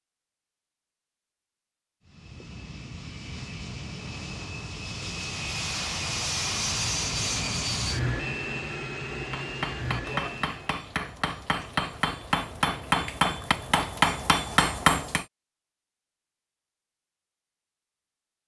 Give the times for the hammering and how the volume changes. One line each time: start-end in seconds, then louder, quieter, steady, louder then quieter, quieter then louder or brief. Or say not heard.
9.3-15.2 louder.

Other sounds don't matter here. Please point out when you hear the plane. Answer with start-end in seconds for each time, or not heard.
2.0-10.8.